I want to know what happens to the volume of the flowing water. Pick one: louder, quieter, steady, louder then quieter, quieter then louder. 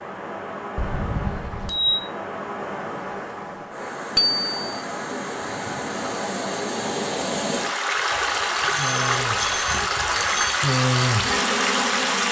louder.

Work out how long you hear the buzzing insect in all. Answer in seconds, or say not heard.
4 s.